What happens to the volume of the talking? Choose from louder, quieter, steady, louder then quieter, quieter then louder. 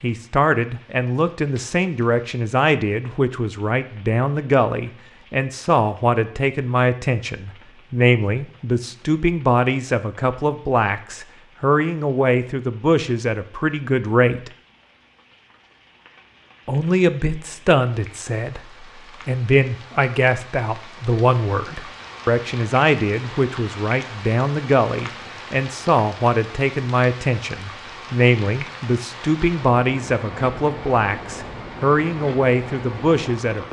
steady.